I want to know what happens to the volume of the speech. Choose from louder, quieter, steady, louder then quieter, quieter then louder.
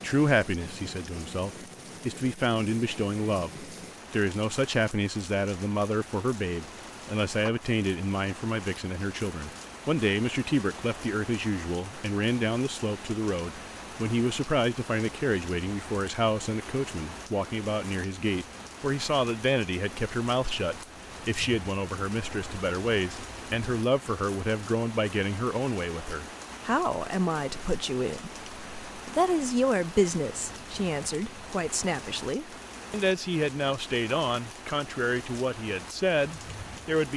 steady.